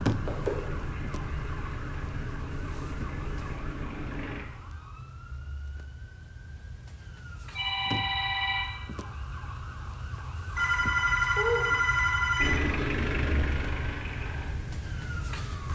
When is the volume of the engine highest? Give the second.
13 s.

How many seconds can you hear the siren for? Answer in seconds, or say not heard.
16 s.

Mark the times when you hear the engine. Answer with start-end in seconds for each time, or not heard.
0.0-4.5, 12.3-15.7.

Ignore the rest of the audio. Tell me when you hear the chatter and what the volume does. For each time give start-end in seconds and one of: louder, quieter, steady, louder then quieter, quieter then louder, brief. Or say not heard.
not heard.